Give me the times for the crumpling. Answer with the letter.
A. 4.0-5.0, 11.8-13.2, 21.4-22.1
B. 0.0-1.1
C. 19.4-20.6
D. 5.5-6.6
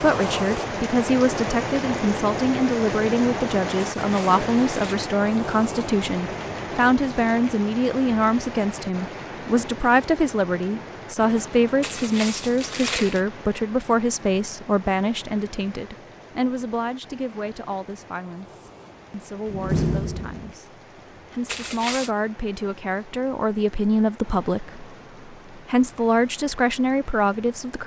A.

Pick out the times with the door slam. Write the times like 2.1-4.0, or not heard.
19.4-20.6.